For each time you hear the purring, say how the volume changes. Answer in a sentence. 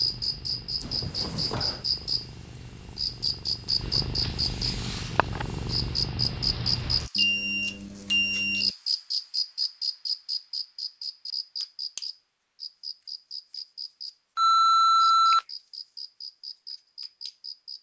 The purring can be heard from 0.0 to 7.1 s, getting louder.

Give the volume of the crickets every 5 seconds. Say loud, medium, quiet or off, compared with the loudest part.
loud, loud, medium, medium.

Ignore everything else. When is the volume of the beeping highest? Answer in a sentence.
The volume of the beeping peaks at 15 seconds.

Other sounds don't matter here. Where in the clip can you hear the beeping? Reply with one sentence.
The beeping can be heard from 0.8 to 1.9 s, from 7.2 to 8.7 s and from 14.3 to 15.4 s.